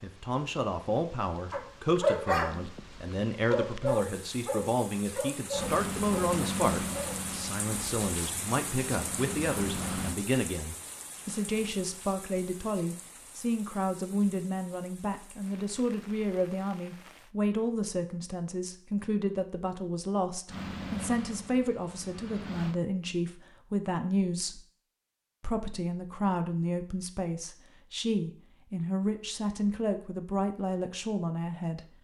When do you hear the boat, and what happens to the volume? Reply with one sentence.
You can hear the boat from 5.5 to 10.2 s, getting quieter then louder; and briefly from 20.4 to 22.8 s.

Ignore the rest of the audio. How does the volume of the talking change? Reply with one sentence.
The volume of the talking stays about the same.